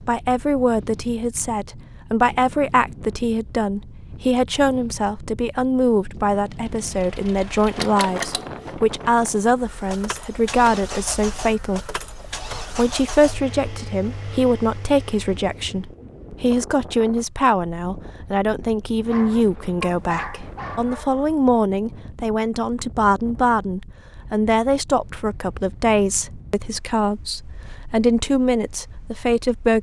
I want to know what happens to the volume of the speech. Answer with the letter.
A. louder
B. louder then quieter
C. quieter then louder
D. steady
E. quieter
D.